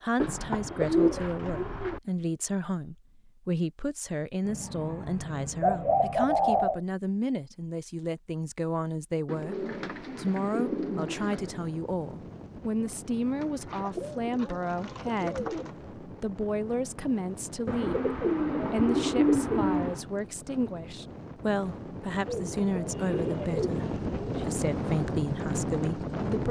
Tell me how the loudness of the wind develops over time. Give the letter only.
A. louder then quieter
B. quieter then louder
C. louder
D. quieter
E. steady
C.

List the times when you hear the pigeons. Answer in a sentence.
You can hear the pigeons from 0.1 to 2.0 s, from 4.5 to 6.8 s, from 9.2 to 11.6 s, from 13.4 to 15.7 s, from 17.6 to 20.1 s and from 22.2 to 24.4 s.